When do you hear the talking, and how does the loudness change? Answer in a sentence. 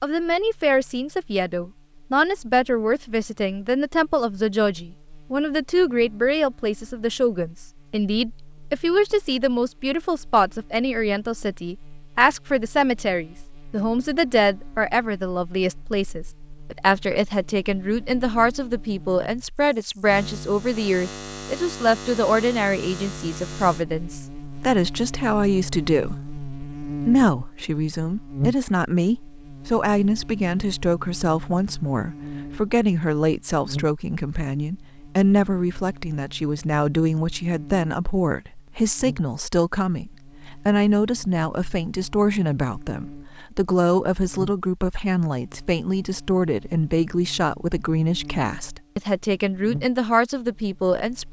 The talking can be heard from 0.0 to 51.2 s, at a steady volume.